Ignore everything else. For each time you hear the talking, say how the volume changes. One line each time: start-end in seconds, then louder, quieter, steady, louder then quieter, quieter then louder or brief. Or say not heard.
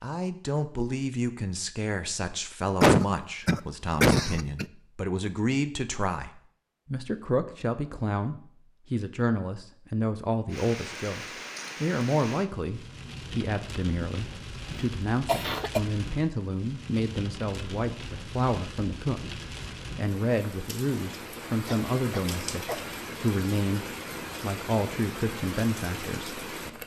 0.0-26.8 steady.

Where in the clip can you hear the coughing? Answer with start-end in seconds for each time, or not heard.
2.8-4.7, 14.8-15.8, 21.6-23.0.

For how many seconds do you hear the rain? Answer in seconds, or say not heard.
16 s.